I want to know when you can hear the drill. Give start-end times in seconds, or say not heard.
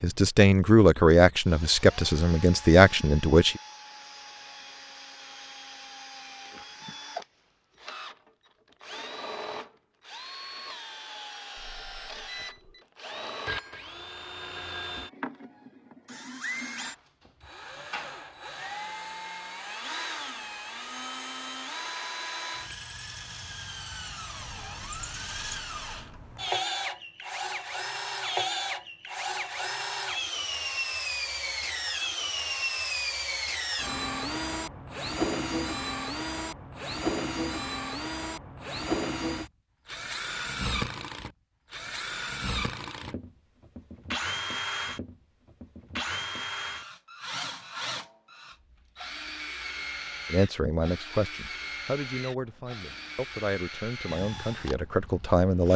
0.0-55.7.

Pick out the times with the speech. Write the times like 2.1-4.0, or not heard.
0.0-3.6, 50.3-55.7.